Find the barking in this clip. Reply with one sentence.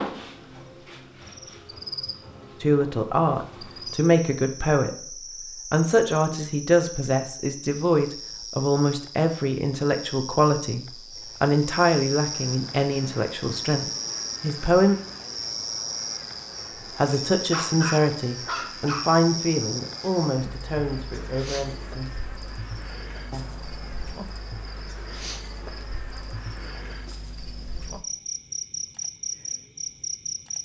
The barking can be heard from 17.1 to 19.1 s.